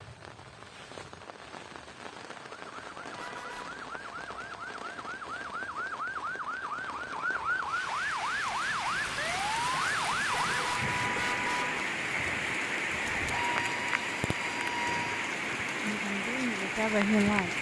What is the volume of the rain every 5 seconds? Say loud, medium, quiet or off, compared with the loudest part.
quiet, medium, loud, loud.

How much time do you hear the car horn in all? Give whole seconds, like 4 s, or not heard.
2 s.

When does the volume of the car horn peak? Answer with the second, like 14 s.
11 s.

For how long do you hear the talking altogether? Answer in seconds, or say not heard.
2 s.